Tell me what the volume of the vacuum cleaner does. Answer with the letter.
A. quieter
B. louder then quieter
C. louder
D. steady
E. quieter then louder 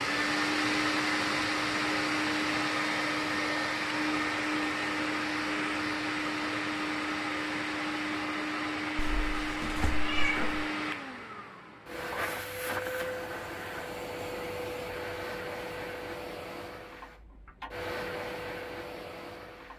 A.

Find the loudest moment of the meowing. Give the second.
10 s.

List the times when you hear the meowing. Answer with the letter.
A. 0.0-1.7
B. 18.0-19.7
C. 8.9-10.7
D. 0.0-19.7
C.